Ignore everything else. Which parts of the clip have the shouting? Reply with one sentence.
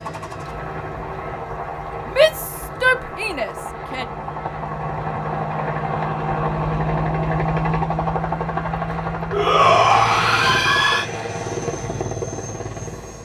The shouting can be heard from 2.0 to 4.0 s and from 9.3 to 11.1 s.